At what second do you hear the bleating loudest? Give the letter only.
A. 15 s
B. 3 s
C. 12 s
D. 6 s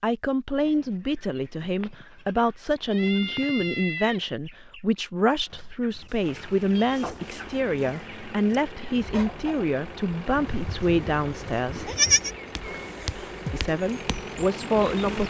C.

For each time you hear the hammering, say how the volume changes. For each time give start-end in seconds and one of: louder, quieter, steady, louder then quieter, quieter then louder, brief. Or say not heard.
not heard.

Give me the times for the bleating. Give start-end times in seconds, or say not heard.
1.6-4.2, 10.4-12.3.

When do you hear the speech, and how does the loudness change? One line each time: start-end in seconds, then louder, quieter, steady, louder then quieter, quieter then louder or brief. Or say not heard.
0.0-11.9 steady
13.5-15.2 brief.